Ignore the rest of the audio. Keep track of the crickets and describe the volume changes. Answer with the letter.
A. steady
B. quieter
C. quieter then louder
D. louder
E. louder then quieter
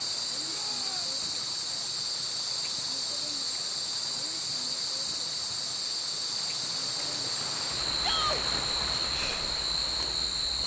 A.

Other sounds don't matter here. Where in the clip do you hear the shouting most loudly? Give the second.
8 s.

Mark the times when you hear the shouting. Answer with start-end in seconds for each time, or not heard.
0.5-1.1, 8.0-8.4.